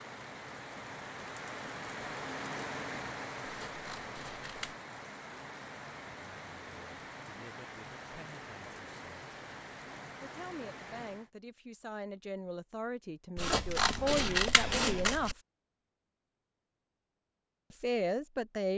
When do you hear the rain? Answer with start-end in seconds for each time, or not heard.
0.0-11.3.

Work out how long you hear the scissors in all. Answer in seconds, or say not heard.
3 s.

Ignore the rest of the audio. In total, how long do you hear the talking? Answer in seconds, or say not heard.
9 s.